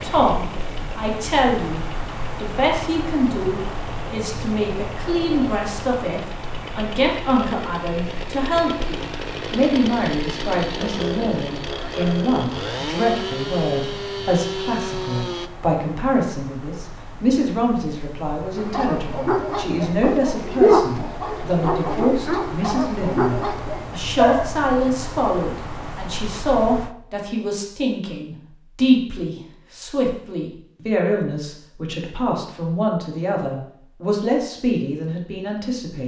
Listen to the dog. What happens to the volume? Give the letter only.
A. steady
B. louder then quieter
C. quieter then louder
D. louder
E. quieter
B.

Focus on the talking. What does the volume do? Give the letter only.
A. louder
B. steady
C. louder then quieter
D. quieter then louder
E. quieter
B.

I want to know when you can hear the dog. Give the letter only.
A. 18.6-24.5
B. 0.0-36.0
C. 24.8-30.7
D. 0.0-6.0
A.